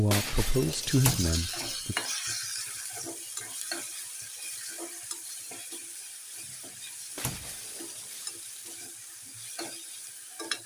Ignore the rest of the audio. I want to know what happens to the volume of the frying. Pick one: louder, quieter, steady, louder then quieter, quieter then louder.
quieter.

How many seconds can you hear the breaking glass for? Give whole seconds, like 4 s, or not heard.
3 s.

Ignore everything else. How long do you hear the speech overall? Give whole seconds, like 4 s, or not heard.
2 s.